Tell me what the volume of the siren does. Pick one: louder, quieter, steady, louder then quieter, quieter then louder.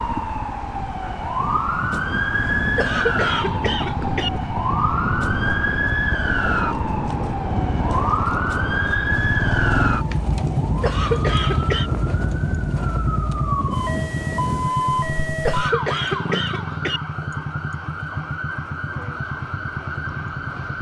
quieter.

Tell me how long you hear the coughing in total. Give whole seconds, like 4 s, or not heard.
4 s.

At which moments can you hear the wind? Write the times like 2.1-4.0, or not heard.
0.0-14.8.